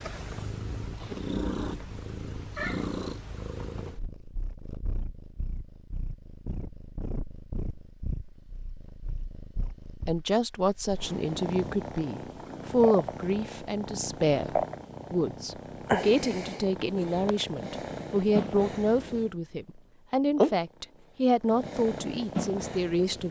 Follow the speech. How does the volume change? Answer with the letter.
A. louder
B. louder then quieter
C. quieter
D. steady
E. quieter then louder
D.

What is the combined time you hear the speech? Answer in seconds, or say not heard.
13 s.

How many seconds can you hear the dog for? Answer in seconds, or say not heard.
not heard.